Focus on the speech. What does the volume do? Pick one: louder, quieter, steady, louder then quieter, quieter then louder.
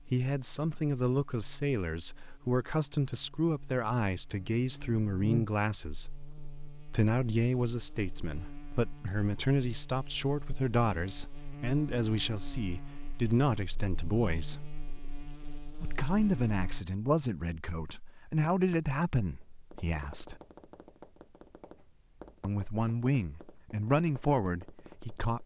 steady.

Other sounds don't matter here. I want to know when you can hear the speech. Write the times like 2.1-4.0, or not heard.
0.1-14.8, 15.8-20.4, 22.4-25.4.